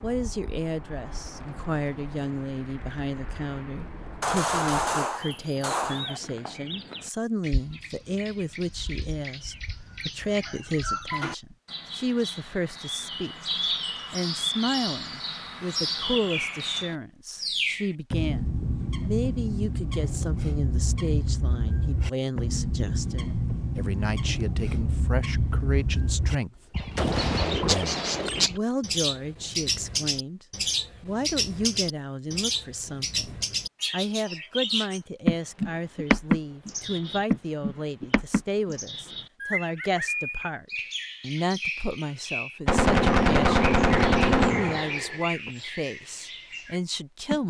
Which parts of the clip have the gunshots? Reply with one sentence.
You can hear the gunshots from 4.2 to 6.2 s, from 26.9 to 28.5 s and from 42.6 to 45.5 s.